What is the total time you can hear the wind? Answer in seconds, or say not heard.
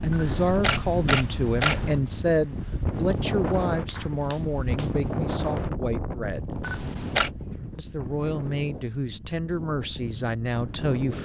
11 s.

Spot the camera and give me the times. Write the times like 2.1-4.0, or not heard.
0.1-1.9, 6.6-7.3.